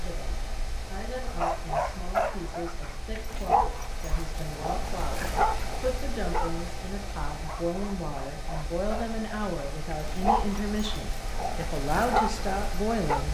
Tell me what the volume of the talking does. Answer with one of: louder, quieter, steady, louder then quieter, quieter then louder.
louder.